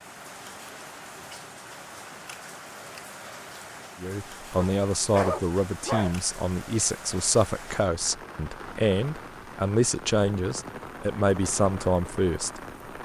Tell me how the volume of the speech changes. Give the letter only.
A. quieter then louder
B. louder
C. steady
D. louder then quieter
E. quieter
C.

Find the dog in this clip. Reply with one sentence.
You can hear the dog from 4.6 to 6.2 s.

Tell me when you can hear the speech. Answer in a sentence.
You can hear the speech from 4.0 to 13.0 s.